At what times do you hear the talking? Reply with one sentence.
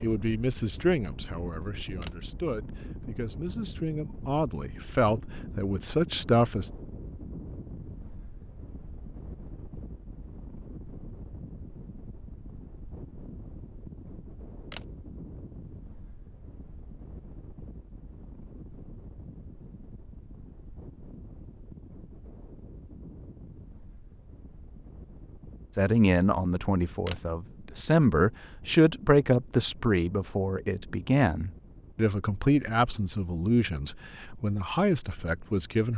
The talking can be heard from 0.0 to 6.7 s and from 25.8 to 35.9 s.